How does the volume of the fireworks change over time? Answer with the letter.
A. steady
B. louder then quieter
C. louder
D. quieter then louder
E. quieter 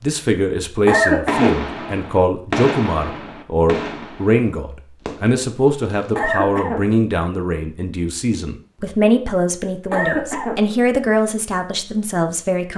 B.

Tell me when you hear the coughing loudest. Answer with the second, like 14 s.
1 s.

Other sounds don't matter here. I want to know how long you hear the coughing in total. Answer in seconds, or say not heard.
2 s.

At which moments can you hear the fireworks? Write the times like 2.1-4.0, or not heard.
1.2-6.3.